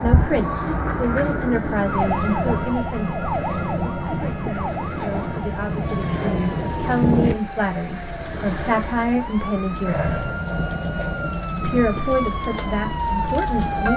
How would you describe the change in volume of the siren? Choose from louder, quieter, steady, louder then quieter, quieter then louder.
quieter then louder.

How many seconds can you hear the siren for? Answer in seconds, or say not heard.
14 s.